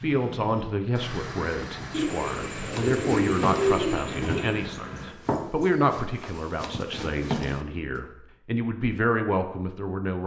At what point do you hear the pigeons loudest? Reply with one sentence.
The loudest moment of the pigeons is at 4 seconds.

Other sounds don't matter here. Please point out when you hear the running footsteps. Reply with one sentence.
You can hear the running footsteps from 2.7 to 8.0 s.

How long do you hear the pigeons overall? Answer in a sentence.
The pigeons can be heard for 3 seconds in total.